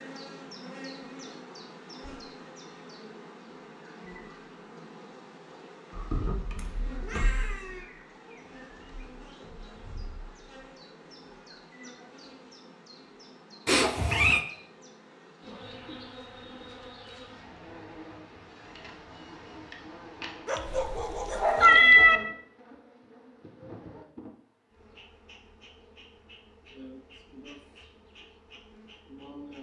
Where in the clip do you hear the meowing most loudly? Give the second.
22 s.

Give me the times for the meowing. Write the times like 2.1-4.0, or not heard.
6.5-7.8, 13.7-14.4, 20.7-22.2.